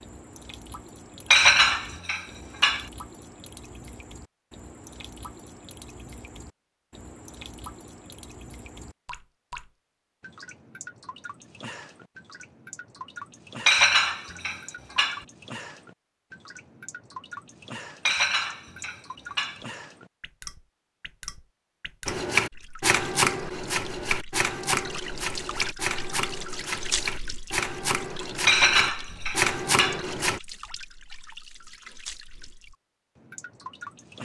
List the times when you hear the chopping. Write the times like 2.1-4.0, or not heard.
22.1-30.4.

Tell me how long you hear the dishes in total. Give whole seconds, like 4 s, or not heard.
6 s.